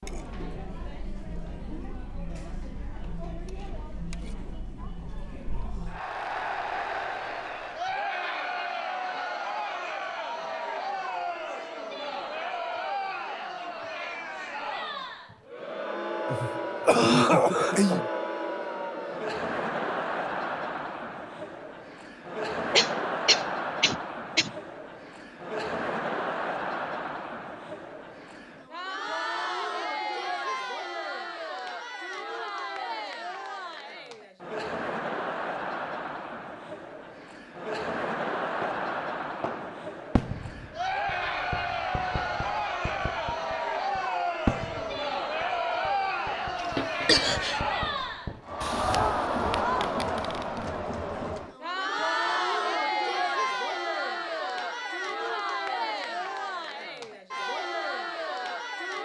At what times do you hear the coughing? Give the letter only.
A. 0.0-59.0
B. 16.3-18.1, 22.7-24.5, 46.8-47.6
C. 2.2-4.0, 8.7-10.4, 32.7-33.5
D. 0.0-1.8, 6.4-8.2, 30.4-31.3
B.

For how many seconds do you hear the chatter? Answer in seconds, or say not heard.
59 s.